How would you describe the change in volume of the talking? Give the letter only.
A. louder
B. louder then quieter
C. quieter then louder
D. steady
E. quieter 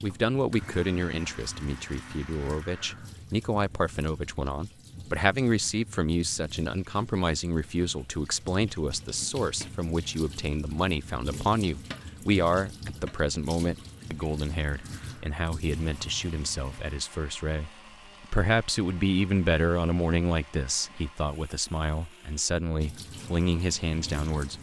D.